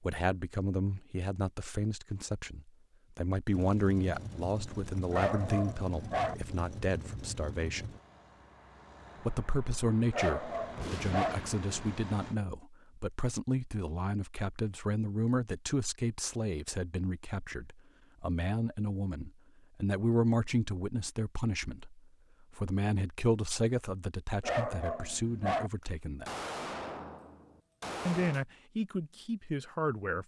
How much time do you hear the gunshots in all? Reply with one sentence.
You can hear the gunshots for 4 seconds altogether.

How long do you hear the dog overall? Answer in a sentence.
You can hear the dog for 4 seconds altogether.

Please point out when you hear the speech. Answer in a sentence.
The speech can be heard from 0.0 to 8.0 s, from 9.2 to 26.3 s and from 28.1 to 30.2 s.